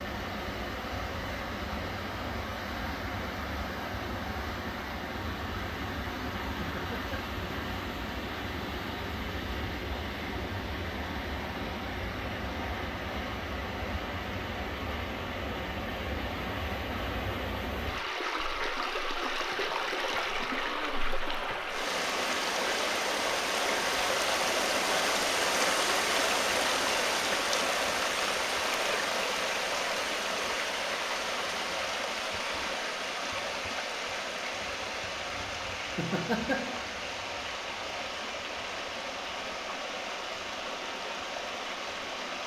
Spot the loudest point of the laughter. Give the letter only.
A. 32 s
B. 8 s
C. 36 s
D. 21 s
C.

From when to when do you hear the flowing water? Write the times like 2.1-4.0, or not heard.
0.0-42.4.